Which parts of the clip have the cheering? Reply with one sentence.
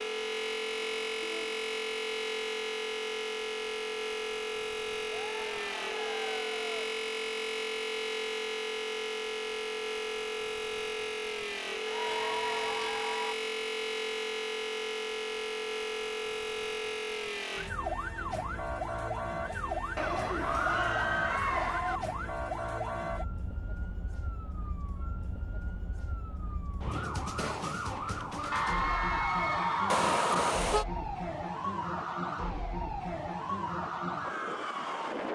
You can hear the cheering from 5.1 to 6.8 s, from 11.8 to 13.3 s, from 19.9 to 22.0 s and from 28.5 to 30.6 s.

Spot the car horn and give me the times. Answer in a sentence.
The car horn can be heard from 0.8 to 1.6 s, from 12.1 to 13.1 s and from 29.9 to 30.9 s.